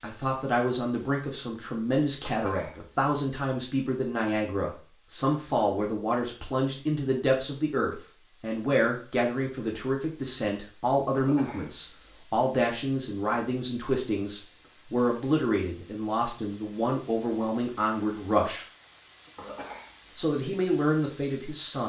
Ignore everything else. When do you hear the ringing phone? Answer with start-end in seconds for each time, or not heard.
not heard.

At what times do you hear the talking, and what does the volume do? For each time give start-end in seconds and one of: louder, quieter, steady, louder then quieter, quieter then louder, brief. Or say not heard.
0.0-18.6 steady
20.1-21.8 brief.